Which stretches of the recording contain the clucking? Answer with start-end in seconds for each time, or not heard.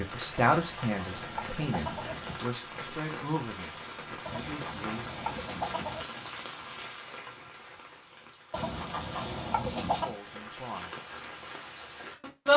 0.5-2.4, 4.2-6.1, 8.5-10.2.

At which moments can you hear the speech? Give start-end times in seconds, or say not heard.
0.0-5.2, 9.6-11.0.